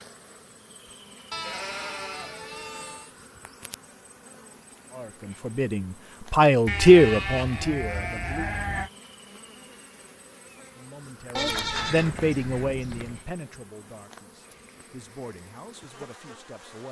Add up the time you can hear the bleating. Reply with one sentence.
The bleating can be heard for 6 seconds in total.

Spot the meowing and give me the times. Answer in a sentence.
The meowing can't be heard in this clip.